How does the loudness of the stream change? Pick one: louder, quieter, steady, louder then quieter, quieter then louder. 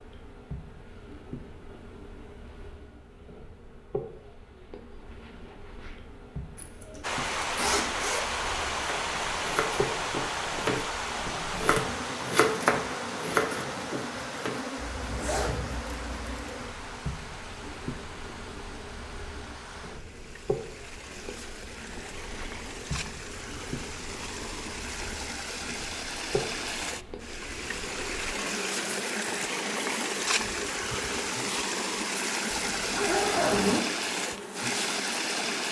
quieter then louder.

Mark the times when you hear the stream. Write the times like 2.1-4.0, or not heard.
7.0-35.6.